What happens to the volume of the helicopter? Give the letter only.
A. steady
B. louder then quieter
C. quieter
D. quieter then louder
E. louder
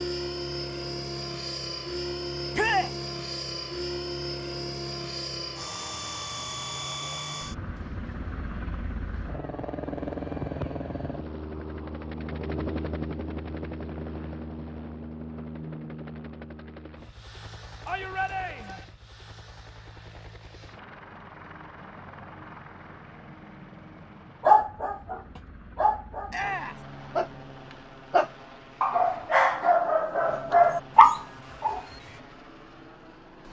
C.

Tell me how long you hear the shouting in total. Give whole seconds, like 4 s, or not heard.
2 s.